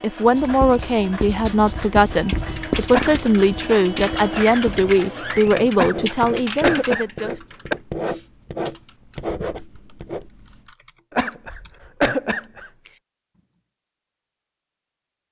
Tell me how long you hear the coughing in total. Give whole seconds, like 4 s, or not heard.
4 s.